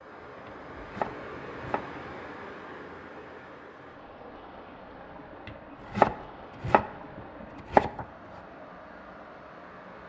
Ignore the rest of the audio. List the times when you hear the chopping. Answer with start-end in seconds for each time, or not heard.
0.5-2.5, 5.5-8.1.